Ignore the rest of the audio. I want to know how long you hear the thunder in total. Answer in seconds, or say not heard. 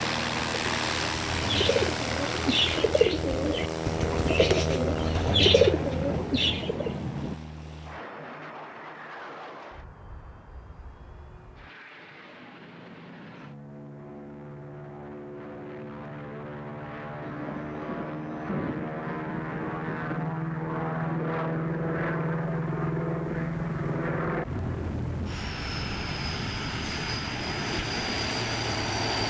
5 s.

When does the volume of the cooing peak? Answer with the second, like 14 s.
6 s.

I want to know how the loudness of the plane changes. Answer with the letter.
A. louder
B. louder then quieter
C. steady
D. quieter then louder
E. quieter
D.